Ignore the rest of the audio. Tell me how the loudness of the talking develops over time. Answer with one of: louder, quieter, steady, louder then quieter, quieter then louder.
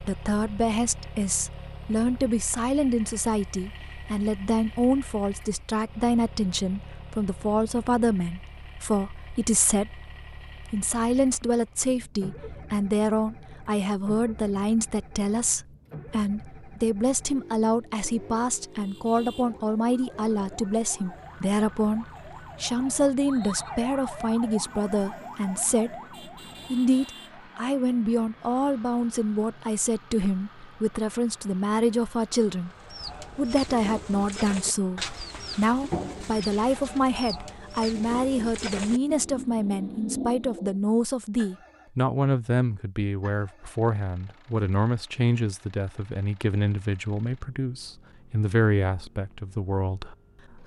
steady.